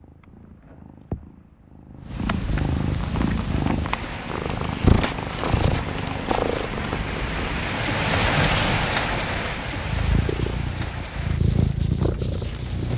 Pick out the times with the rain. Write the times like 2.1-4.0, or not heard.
3.0-12.9.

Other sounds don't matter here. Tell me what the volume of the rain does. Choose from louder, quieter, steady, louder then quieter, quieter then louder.
louder then quieter.